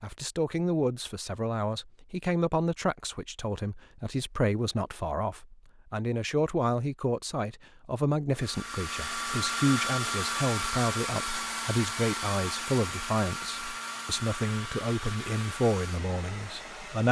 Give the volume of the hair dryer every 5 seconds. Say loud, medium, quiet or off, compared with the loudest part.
off, loud, loud, medium.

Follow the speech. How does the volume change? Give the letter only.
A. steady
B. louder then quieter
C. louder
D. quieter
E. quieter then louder
A.